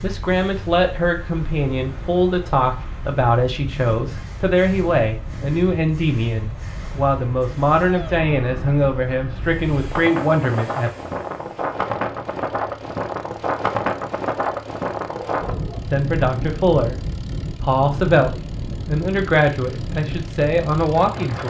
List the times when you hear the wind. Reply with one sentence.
The wind can be heard from 0.0 to 21.4 s.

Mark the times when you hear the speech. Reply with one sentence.
The speech can be heard from 0.0 to 10.9 s and from 15.9 to 21.4 s.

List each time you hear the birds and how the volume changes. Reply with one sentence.
The birds can't be heard in this clip.